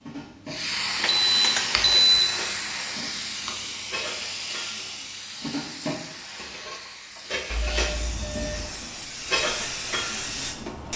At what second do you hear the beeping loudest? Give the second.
2 s.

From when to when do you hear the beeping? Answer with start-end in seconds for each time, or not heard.
1.0-2.3, 7.5-8.8.